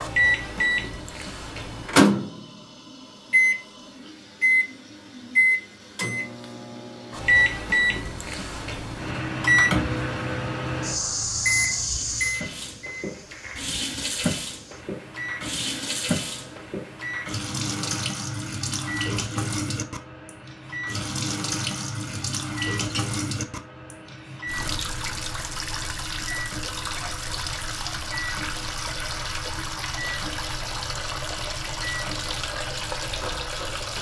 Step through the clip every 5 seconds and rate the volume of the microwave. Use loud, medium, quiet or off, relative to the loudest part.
loud, loud, medium, quiet, quiet, quiet, quiet.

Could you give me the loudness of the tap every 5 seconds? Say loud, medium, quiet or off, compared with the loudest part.
quiet, quiet, loud, loud, loud, loud, loud.